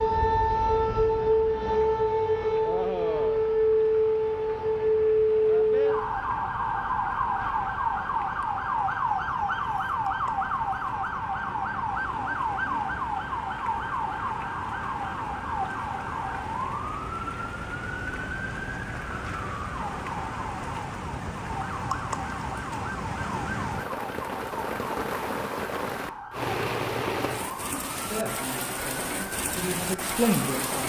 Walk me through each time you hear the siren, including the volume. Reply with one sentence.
You can hear the siren from 0.0 to 30.6 s, getting quieter.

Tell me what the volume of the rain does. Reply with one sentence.
The loudness of the rain goes up.